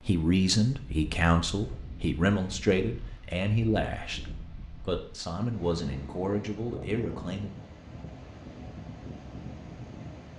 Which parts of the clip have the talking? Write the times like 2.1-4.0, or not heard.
0.1-7.5.